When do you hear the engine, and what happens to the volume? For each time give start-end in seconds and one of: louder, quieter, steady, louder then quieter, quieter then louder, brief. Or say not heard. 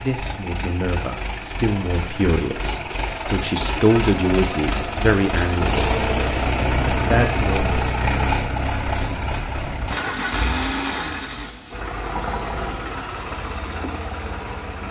0.0-14.8 louder then quieter.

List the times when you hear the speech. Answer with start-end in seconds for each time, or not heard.
0.0-8.1.